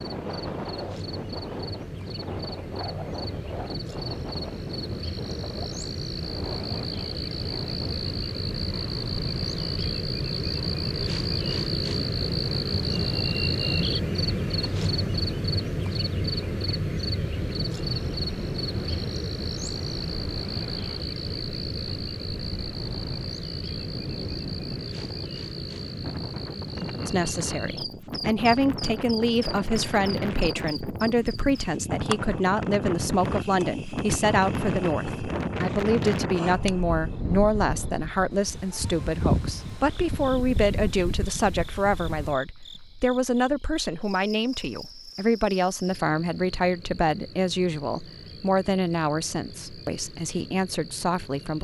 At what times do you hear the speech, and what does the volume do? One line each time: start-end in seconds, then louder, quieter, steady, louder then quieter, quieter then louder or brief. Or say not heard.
27.1-51.6 steady.